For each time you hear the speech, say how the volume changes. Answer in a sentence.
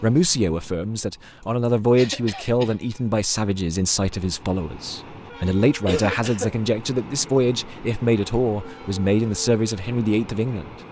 You can hear the speech from 0.0 to 10.8 s, at a steady volume.